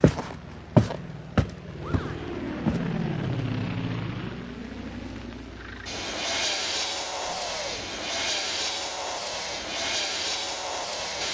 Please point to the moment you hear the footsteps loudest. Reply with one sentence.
The loudest moment of the footsteps is at 1 second.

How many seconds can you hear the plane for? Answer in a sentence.
The plane can be heard for 11 seconds in total.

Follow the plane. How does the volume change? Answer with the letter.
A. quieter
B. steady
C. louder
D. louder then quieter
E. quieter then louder
C.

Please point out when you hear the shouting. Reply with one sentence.
You can hear the shouting from 1.8 to 2.3 s and from 7.2 to 7.8 s.